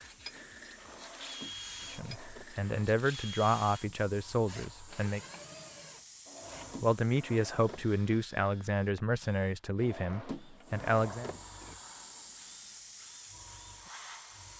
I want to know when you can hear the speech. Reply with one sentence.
You can hear the speech from 1.9 to 5.2 s and from 6.8 to 11.3 s.